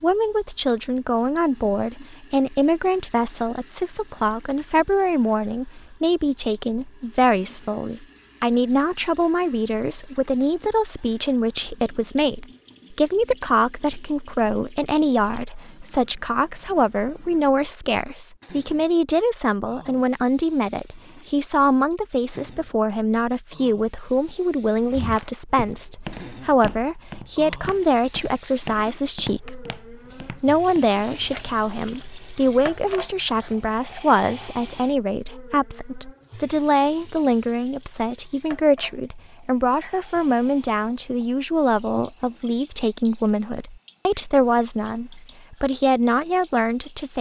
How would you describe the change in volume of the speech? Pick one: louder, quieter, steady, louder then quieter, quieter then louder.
steady.